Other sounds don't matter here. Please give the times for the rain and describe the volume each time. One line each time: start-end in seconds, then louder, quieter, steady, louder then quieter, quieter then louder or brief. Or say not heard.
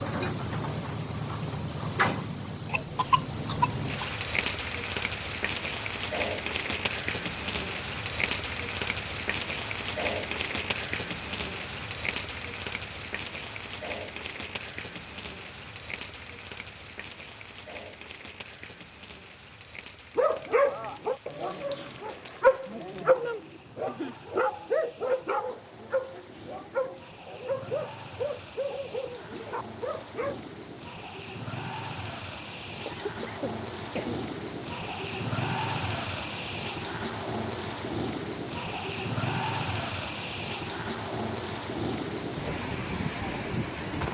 0.0-44.0 quieter then louder.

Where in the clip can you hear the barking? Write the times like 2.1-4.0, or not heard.
20.1-30.4.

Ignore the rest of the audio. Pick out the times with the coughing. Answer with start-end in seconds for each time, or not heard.
2.7-4.1, 32.9-34.2.